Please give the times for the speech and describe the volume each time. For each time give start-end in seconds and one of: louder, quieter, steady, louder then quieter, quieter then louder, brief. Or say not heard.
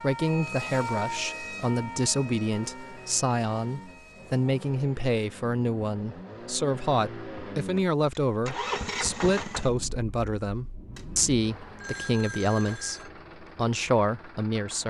0.0-14.8 steady.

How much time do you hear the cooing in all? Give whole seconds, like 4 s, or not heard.
not heard.